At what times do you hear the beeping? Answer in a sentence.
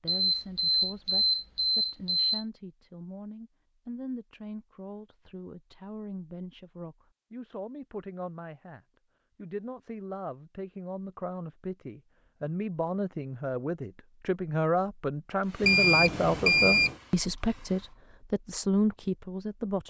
The beeping can be heard from 0.1 to 2.5 s and from 15.6 to 16.9 s.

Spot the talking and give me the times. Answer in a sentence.
The talking can be heard from 0.0 to 19.8 s.